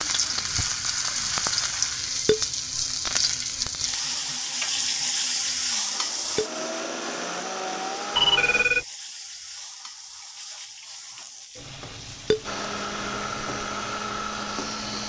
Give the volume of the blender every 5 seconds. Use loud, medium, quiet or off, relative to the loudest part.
quiet, loud, loud.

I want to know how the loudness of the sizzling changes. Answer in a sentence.
The volume of the sizzling goes down.